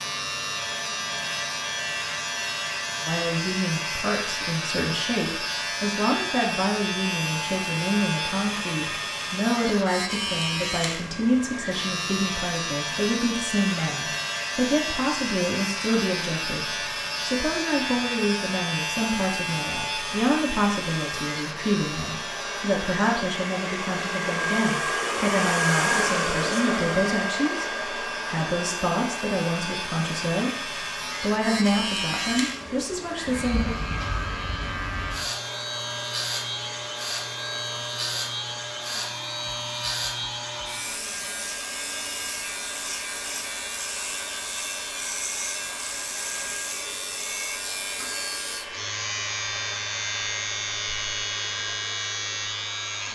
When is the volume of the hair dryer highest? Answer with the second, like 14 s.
26 s.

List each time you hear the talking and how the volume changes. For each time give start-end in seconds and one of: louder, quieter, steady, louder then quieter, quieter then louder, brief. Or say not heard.
3.0-30.5 steady
31.2-33.8 brief.